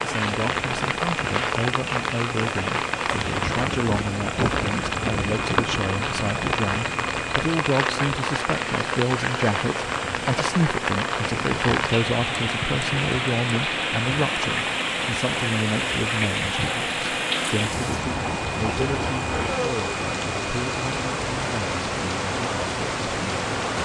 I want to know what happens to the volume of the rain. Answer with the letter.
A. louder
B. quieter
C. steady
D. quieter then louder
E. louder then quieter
C.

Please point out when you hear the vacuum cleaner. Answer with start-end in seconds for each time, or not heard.
0.0-23.6.